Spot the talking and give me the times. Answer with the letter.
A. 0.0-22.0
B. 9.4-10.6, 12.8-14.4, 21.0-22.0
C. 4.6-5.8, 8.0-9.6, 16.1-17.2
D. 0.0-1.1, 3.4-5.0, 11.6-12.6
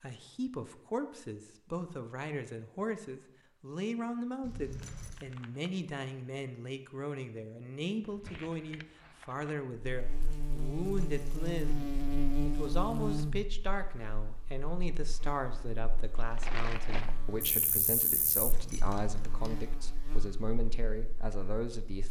A.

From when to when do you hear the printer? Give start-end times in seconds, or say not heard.
not heard.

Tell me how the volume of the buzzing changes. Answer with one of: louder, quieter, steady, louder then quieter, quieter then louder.
quieter then louder.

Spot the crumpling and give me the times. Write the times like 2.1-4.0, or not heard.
4.6-5.8, 8.0-9.6, 16.1-17.2.